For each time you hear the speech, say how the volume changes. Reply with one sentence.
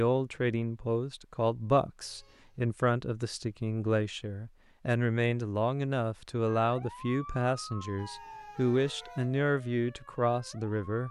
You can hear the speech from 0.0 to 11.0 s, at a steady volume.